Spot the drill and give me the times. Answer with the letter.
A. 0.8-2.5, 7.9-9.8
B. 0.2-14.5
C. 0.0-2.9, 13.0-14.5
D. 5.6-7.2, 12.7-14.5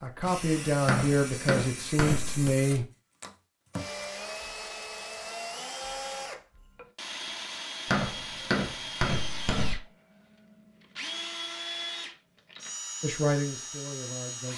B.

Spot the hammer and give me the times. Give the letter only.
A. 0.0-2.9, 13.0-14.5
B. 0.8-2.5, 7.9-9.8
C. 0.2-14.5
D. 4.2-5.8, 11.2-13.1
B.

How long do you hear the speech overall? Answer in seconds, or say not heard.
4 s.